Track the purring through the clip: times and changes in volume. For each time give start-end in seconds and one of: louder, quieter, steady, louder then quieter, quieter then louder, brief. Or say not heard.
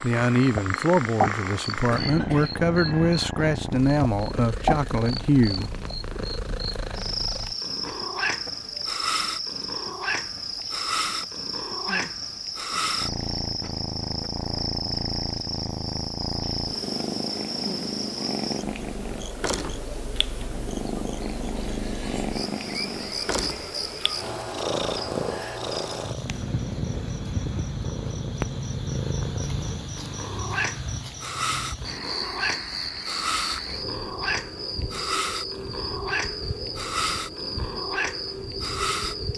0.0-39.3 steady.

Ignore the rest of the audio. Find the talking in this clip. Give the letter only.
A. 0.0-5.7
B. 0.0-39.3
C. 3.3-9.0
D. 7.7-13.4
A.